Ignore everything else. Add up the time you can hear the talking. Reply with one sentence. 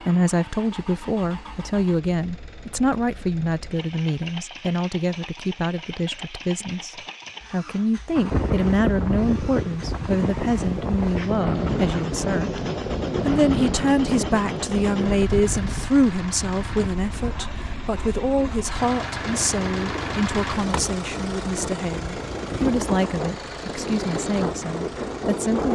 The talking can be heard for 25 seconds in total.